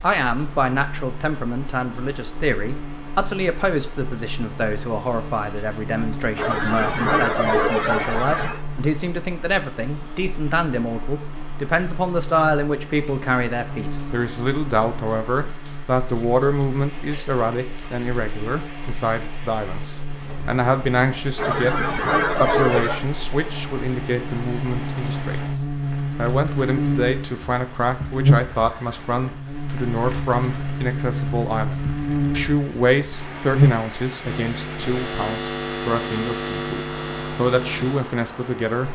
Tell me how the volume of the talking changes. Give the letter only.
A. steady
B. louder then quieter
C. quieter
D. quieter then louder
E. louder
A.